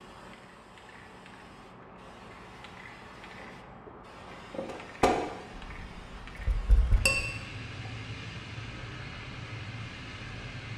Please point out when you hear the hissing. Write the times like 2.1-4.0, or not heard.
0.0-10.7.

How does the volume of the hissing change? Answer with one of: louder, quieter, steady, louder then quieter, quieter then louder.
louder.